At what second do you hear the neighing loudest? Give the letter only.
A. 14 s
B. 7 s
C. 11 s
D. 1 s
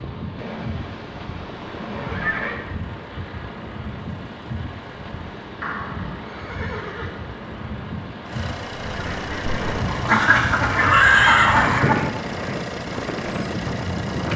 C.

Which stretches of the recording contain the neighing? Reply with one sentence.
You can hear the neighing from 0.3 to 2.6 s, from 5.6 to 7.3 s and from 9.8 to 11.8 s.